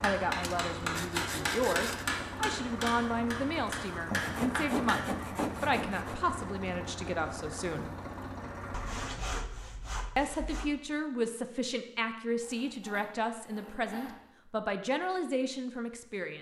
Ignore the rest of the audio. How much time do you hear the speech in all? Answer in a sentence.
You can hear the speech for 14 seconds altogether.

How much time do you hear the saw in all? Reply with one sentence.
The saw can be heard for 8 seconds in total.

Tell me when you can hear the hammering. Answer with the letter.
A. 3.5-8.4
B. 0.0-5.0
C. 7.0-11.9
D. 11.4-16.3
B.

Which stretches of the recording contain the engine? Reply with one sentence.
You can hear the engine from 0.0 to 9.2 s.